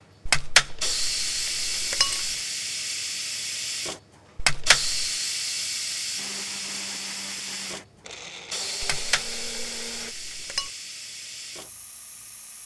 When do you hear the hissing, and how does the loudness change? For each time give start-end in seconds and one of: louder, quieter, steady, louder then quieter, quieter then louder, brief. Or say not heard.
0.0-12.6 quieter.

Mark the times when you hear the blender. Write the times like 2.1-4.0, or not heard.
6.2-10.2.